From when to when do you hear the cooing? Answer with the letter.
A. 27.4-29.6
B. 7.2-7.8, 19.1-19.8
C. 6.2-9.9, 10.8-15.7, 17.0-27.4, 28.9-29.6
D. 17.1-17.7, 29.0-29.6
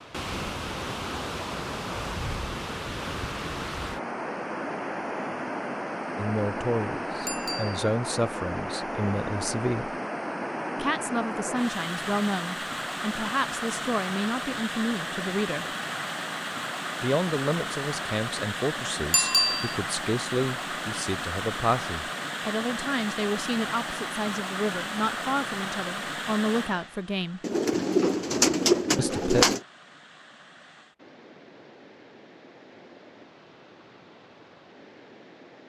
A.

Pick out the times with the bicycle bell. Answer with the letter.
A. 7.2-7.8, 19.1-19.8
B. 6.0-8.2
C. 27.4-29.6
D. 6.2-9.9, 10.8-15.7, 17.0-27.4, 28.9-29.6
A.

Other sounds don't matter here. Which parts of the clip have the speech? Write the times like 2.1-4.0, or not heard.
6.2-9.9, 10.8-15.7, 17.0-27.4, 28.9-29.6.